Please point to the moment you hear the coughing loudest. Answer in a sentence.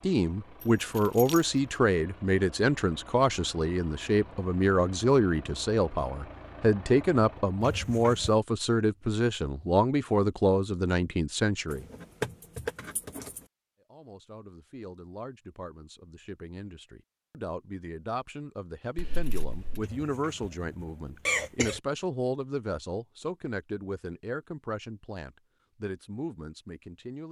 The volume of the coughing peaks at 21 seconds.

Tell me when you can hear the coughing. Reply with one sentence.
You can hear the coughing from 7.6 to 8.3 s and from 19.8 to 21.8 s.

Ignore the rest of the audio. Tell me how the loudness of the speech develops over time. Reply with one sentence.
The volume of the speech goes down.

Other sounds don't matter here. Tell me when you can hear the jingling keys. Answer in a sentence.
The jingling keys can be heard from 0.6 to 1.4 s, from 11.7 to 13.4 s and from 18.9 to 19.9 s.